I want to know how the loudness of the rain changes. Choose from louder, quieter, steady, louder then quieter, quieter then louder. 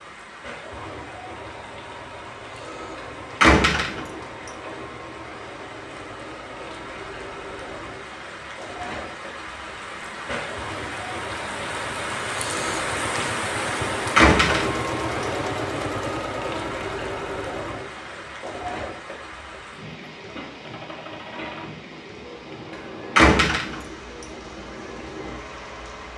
louder then quieter.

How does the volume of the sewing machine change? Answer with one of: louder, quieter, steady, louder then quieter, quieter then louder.
louder then quieter.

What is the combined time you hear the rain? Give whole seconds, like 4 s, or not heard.
26 s.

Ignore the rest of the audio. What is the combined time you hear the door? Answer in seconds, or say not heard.
2 s.